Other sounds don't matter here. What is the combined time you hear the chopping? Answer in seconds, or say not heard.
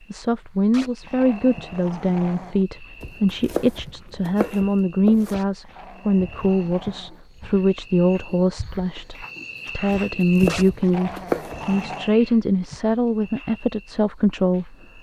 4 s.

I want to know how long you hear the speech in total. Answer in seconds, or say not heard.
15 s.